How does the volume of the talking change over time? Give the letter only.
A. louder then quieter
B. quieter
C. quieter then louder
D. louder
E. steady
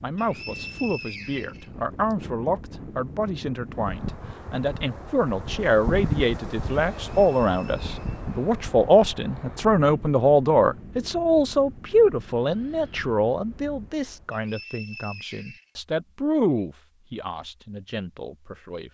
A.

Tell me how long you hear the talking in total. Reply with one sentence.
You can hear the talking for 19 seconds altogether.